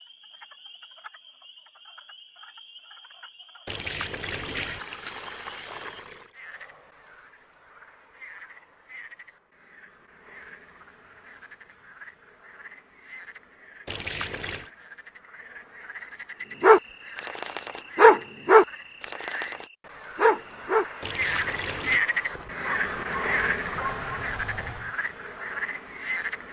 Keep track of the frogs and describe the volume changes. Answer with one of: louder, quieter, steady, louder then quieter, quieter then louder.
louder.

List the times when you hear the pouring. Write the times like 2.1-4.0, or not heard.
3.6-6.3, 13.8-14.7, 21.0-22.0.